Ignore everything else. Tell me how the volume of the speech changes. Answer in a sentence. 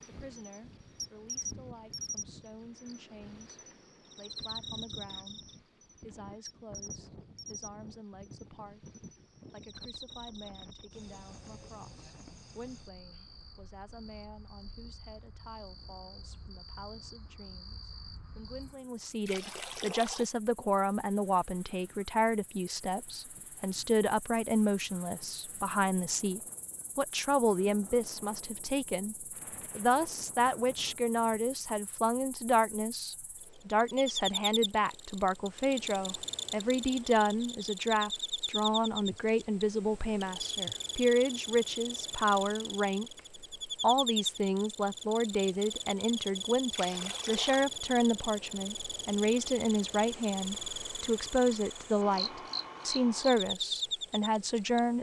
The volume of the speech goes up.